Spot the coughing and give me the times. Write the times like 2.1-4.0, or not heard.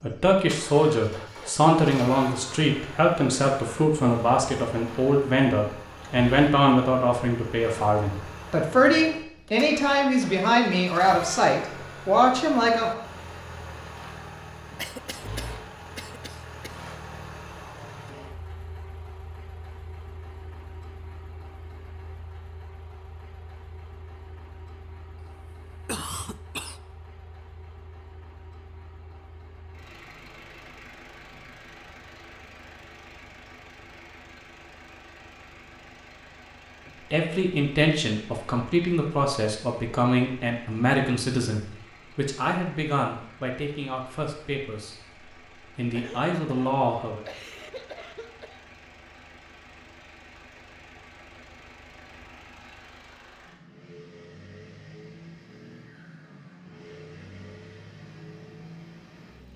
14.8-16.7, 25.5-26.8, 45.9-48.6.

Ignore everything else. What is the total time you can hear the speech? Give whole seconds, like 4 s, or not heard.
23 s.